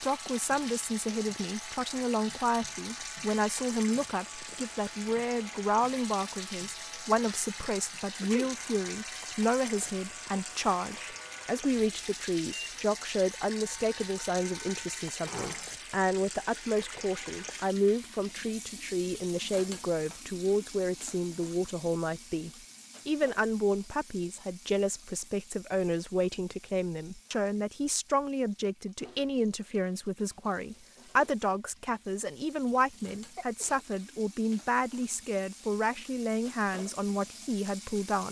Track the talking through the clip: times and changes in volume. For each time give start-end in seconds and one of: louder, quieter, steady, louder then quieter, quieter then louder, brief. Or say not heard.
0.0-38.2 steady.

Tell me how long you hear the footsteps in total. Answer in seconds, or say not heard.
not heard.